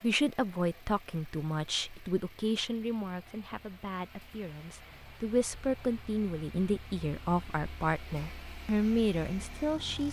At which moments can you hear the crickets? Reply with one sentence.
The crickets can't be heard in this clip.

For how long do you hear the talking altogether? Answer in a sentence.
You can hear the talking for 10 seconds altogether.